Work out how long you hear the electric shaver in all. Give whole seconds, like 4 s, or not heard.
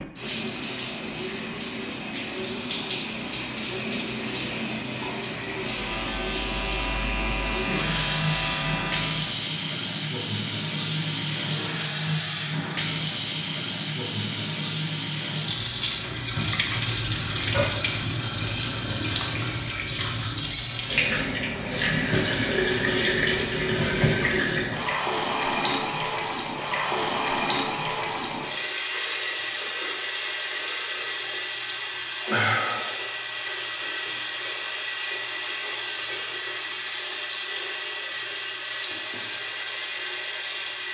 4 s.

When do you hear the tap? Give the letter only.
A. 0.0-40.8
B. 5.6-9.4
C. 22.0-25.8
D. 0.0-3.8
A.